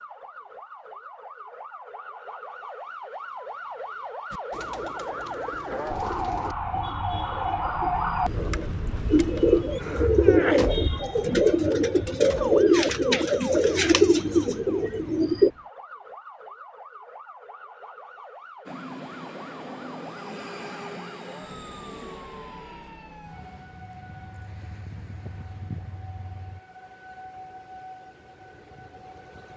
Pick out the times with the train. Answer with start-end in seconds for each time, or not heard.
18.6-26.6.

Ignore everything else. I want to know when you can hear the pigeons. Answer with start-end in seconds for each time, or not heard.
4.3-15.5.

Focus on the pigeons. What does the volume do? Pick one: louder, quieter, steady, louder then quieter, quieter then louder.
louder.